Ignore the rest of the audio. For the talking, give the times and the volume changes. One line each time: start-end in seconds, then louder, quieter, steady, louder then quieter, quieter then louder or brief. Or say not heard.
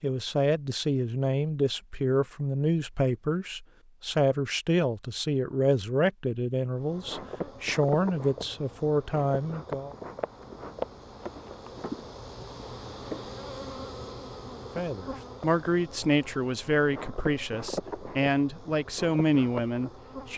0.0-9.9 steady
14.8-20.3 quieter then louder.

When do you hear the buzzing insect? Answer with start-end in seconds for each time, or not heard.
6.8-20.3.